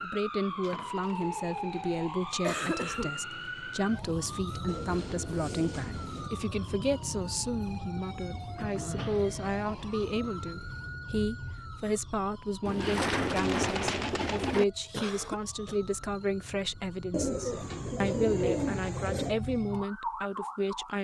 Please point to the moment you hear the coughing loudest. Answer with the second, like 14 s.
3 s.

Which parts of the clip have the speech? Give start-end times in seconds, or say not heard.
0.0-20.9.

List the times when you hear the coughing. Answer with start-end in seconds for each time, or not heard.
2.4-3.2, 8.6-9.2, 14.9-15.8.